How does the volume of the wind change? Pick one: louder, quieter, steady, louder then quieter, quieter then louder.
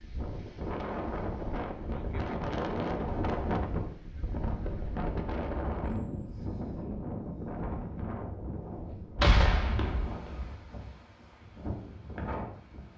quieter.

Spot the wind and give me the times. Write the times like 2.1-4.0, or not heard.
0.0-12.9.